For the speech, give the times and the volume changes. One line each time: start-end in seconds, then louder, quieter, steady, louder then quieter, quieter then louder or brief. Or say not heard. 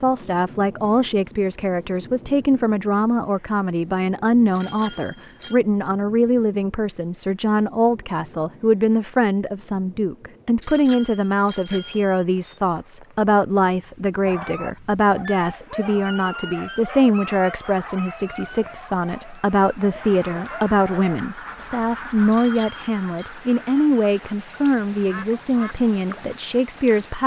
0.0-27.2 steady.